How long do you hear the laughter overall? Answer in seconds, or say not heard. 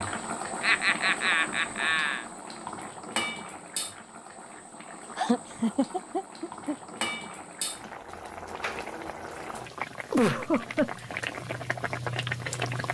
4 s.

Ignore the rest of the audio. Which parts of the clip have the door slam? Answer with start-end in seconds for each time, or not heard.
not heard.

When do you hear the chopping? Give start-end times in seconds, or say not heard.
not heard.